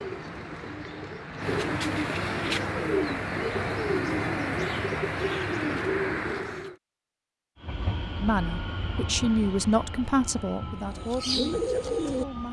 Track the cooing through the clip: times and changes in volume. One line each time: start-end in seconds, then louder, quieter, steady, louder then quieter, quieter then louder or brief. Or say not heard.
0.0-6.8 louder
10.9-12.2 brief.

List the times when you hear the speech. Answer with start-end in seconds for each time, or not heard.
8.2-12.4.